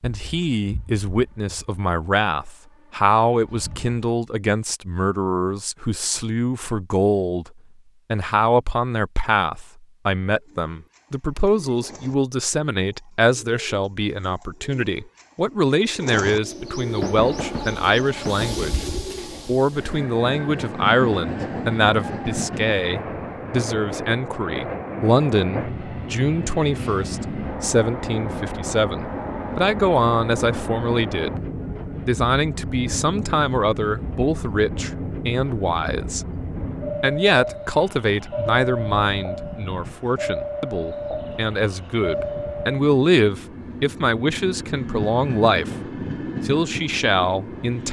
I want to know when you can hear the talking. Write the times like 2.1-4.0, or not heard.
0.0-7.5, 8.1-18.9, 19.4-31.4, 32.0-36.2, 37.0-45.7, 46.5-47.8.